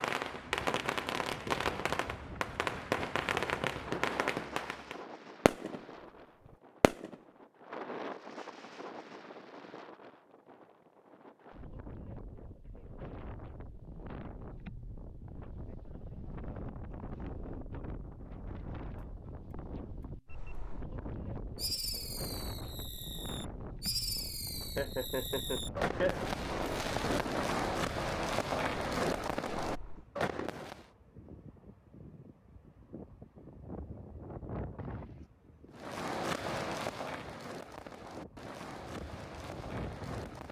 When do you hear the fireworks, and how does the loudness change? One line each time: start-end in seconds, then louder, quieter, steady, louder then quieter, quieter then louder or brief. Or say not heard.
0.0-7.2 quieter
21.6-30.9 louder
35.8-40.4 quieter.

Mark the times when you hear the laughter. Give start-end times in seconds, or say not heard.
24.8-26.3.